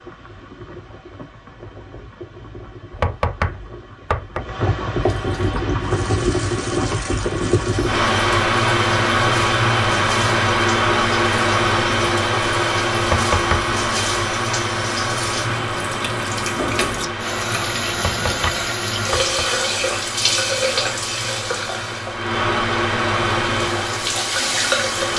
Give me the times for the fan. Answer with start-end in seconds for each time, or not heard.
0.0-25.1.